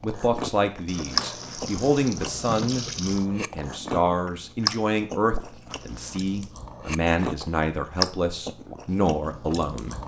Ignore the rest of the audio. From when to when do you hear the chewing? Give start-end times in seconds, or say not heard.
0.0-10.0.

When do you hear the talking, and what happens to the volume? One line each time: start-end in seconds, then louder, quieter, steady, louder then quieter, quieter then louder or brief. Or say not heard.
0.0-10.0 steady.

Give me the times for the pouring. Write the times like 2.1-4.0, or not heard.
0.8-3.2, 5.7-6.5.